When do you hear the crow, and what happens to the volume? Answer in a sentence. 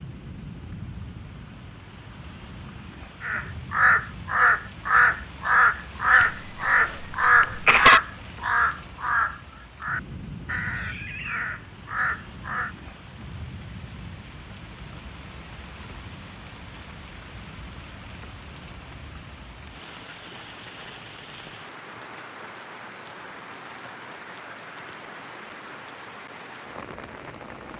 The crow can be heard from 3.2 to 12.7 s, getting quieter.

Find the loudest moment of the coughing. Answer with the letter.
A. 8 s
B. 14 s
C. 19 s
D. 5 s
A.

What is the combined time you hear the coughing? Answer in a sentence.
You can hear the coughing for 2 seconds altogether.